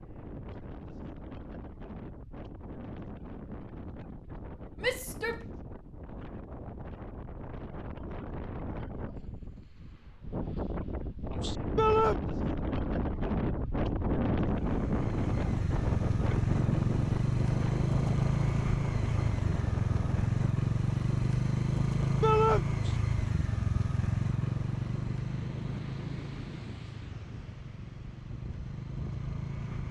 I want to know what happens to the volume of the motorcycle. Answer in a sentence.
The loudness of the motorcycle goes down.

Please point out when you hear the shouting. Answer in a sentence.
You can hear the shouting from 4.8 to 5.4 s, from 11.8 to 12.2 s and from 22.2 to 22.6 s.